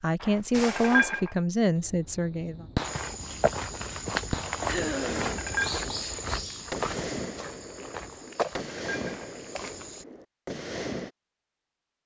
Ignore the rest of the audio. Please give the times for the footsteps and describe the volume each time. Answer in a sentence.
The footsteps can be heard from 2.8 to 10.1 s, getting quieter then louder.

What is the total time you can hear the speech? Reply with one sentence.
The speech can be heard for 3 seconds in total.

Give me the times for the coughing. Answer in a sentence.
You can hear the coughing from 4.7 to 5.4 s.